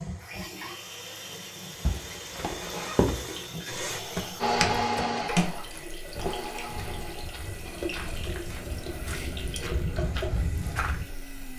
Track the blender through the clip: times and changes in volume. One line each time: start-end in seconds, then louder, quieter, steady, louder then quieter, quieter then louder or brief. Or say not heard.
0.0-11.5 louder then quieter.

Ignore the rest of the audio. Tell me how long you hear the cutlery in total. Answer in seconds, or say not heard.
not heard.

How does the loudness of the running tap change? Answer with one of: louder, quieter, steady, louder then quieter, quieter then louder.
steady.